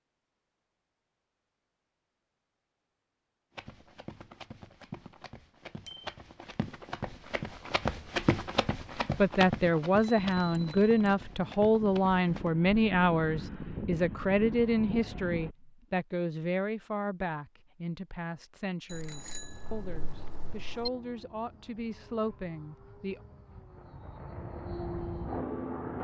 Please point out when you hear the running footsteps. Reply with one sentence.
The running footsteps can be heard from 3.5 to 12.5 s.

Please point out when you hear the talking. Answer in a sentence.
You can hear the talking from 9.2 to 23.2 s.